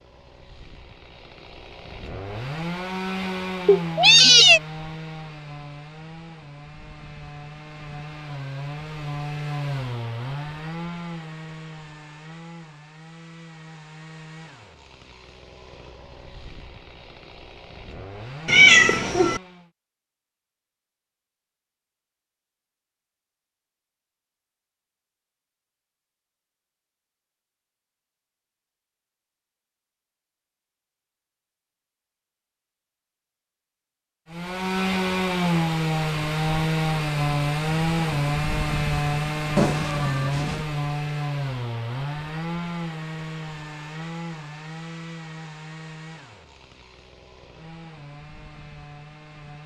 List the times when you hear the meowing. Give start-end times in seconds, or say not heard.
3.6-4.6, 18.4-19.4, 39.5-40.6.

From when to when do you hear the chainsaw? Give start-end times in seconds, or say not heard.
0.0-19.7, 34.3-49.6.